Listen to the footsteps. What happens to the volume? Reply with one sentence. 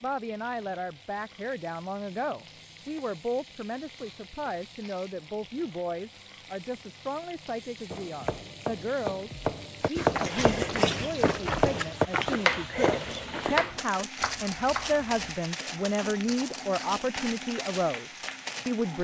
The loudness of the footsteps goes down.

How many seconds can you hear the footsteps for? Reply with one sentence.
You can hear the footsteps for 9 seconds altogether.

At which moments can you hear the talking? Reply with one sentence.
You can hear the talking from 0.0 to 18.9 s.